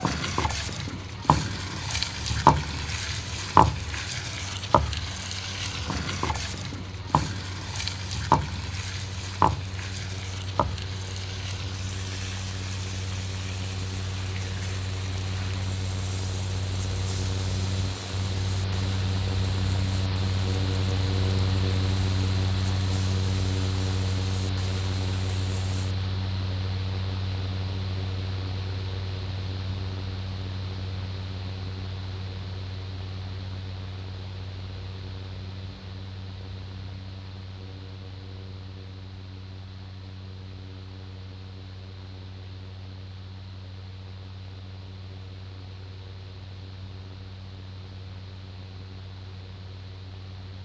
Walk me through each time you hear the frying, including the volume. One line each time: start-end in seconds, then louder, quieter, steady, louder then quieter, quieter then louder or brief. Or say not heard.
0.0-25.9 quieter.